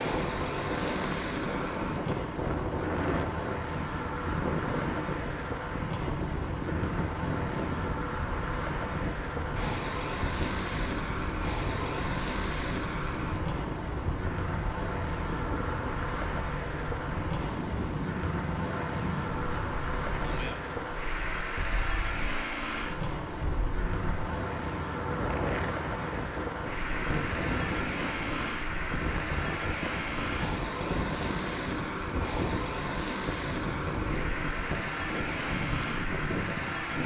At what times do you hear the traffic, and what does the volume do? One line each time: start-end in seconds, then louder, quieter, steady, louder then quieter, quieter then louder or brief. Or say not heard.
0.0-37.0 steady.